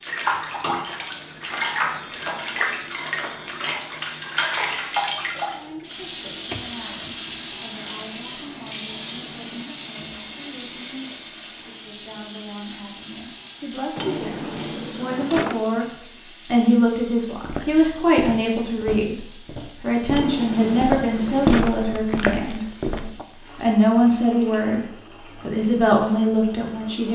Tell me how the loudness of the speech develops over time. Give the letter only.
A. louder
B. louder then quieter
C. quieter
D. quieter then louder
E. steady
A.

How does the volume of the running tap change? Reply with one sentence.
The volume of the running tap goes down.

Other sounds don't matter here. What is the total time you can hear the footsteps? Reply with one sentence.
The footsteps can be heard for 6 seconds in total.